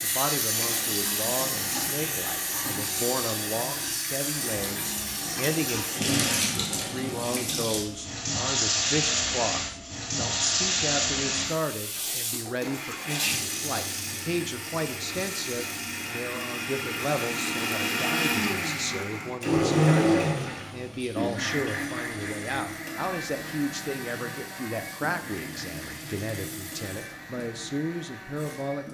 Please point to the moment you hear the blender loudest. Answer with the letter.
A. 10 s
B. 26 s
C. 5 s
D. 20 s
D.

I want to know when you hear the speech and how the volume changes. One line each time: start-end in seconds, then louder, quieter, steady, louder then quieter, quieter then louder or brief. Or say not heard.
0.0-28.8 steady.